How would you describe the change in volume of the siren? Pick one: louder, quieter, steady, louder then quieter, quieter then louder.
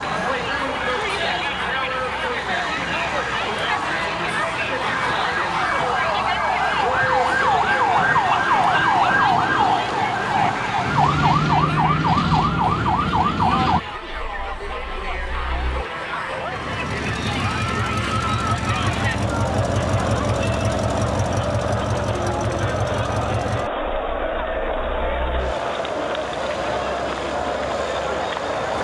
louder.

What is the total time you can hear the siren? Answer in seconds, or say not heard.
14 s.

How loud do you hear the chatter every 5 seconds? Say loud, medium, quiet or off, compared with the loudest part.
loud, loud, medium, loud, loud, loud.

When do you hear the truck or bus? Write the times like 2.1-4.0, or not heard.
0.0-28.7.